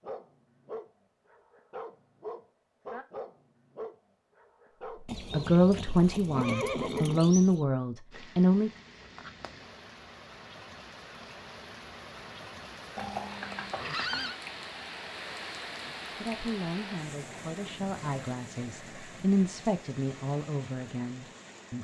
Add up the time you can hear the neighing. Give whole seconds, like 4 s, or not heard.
4 s.